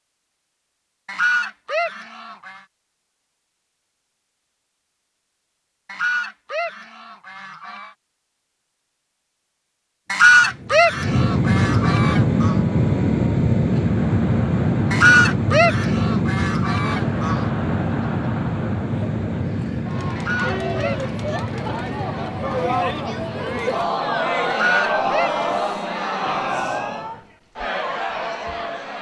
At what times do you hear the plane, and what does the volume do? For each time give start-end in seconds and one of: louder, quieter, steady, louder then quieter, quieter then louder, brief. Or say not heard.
10.1-23.8 quieter.